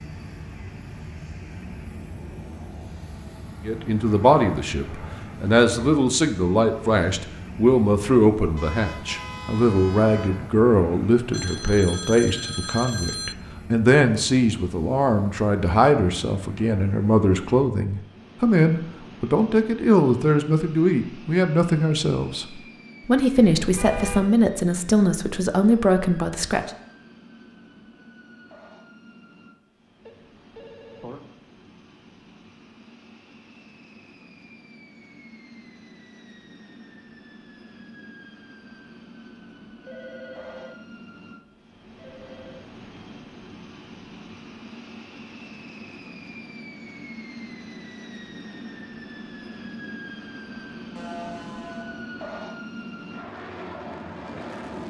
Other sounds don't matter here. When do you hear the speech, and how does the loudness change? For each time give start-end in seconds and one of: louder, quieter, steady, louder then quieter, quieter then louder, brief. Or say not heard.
3.6-26.7 steady.